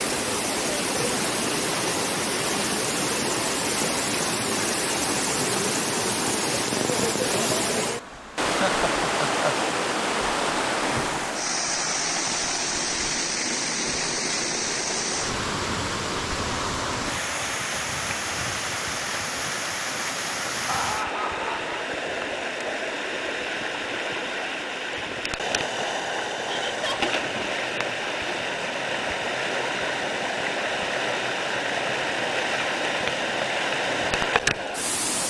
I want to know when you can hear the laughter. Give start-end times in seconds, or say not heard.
8.4-9.6, 20.6-21.9, 26.4-27.1.